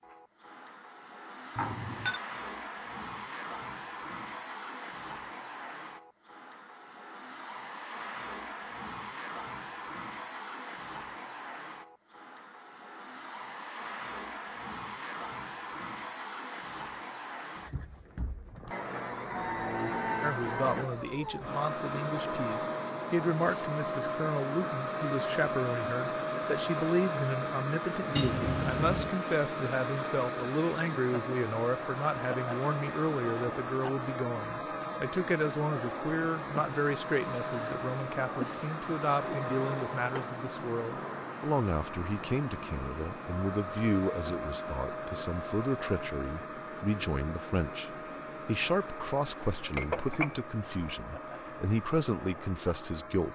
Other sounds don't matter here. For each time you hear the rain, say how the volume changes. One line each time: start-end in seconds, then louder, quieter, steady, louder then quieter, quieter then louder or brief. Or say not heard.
not heard.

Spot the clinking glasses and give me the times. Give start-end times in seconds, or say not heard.
1.6-2.2, 28.1-29.1, 49.7-50.4.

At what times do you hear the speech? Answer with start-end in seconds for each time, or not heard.
20.2-53.2.